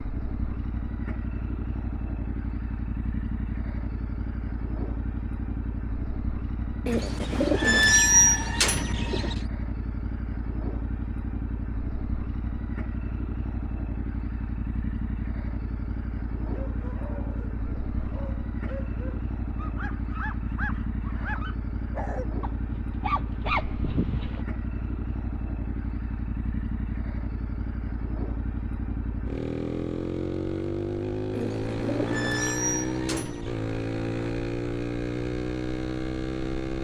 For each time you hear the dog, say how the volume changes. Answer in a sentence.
You can hear the dog from 16.4 to 24.4 s, getting louder.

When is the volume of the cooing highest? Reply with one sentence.
The loudest moment of the cooing is at 8 seconds.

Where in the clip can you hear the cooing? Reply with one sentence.
You can hear the cooing from 6.8 to 9.4 s and from 31.3 to 33.5 s.